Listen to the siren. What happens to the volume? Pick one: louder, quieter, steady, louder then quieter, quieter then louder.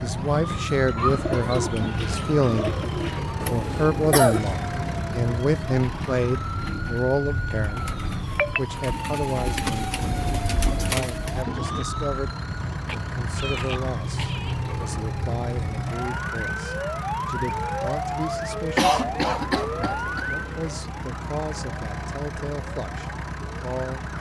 steady.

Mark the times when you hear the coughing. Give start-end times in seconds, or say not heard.
3.5-4.4, 12.8-14.6, 18.8-20.4.